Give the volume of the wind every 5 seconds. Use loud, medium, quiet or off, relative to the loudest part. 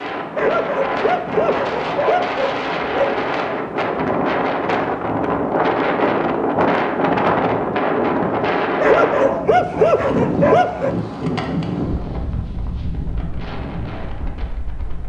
loud, loud, medium.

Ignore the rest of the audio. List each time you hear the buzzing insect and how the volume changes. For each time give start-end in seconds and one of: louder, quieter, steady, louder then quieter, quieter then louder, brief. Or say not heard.
not heard.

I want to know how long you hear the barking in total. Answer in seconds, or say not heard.
5 s.